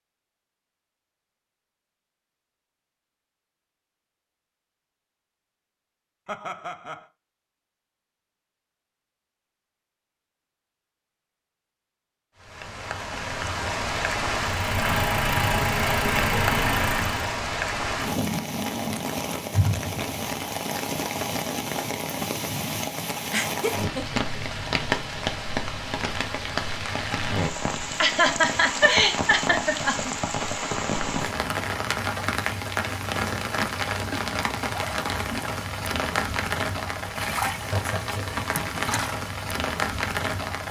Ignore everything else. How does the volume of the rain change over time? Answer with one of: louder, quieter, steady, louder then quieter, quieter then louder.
steady.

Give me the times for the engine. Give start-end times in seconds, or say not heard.
14.3-17.4.